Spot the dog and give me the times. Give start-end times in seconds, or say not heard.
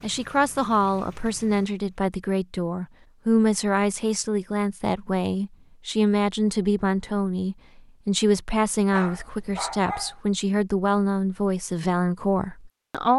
8.9-10.2.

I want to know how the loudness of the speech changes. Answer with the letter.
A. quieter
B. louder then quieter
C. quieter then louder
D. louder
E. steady
E.